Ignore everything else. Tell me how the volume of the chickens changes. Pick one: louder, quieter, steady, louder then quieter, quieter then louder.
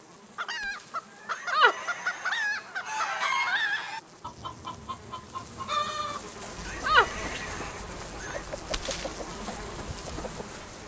quieter.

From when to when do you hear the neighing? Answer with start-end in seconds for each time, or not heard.
1.3-3.3, 6.7-8.4.